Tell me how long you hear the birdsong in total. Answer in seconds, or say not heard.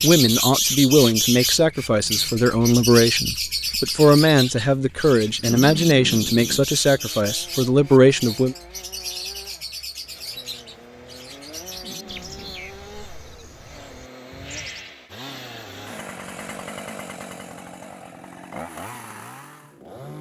15 s.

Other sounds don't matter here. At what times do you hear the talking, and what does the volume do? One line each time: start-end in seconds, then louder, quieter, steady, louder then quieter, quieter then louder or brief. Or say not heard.
0.0-8.6 steady.